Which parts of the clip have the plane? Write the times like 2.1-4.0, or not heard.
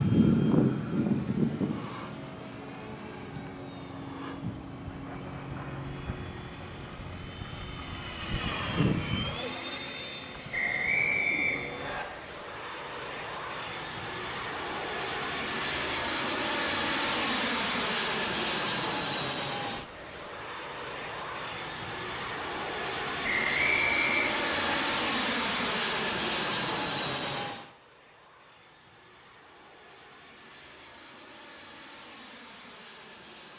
0.0-33.5.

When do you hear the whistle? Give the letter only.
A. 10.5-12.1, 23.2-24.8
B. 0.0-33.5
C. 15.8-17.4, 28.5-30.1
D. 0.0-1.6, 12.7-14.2
A.